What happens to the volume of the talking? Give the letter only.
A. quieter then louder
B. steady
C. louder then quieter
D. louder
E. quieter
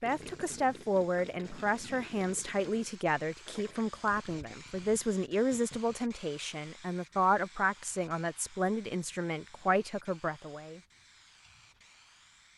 B.